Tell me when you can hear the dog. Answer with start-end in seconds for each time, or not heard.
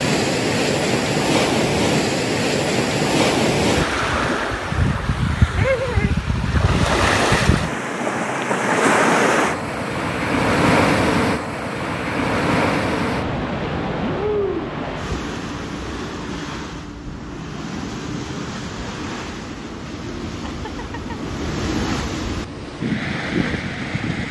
not heard.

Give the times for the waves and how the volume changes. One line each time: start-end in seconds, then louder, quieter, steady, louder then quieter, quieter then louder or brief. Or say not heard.
0.0-24.2 quieter.